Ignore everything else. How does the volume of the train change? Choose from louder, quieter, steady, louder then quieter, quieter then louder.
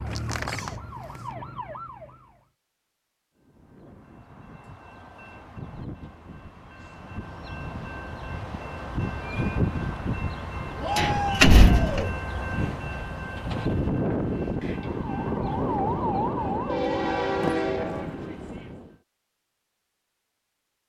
louder.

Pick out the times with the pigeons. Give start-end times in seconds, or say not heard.
not heard.